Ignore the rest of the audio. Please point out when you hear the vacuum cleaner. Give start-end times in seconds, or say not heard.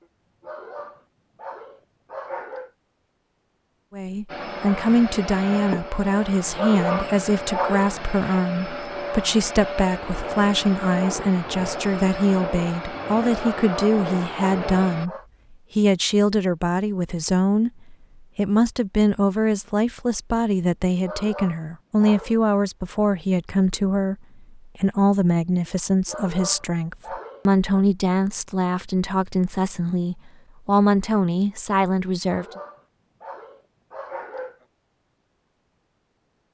4.2-15.1.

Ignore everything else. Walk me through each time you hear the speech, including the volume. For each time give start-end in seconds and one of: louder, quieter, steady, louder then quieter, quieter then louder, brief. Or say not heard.
3.9-15.1 steady
15.8-32.5 steady.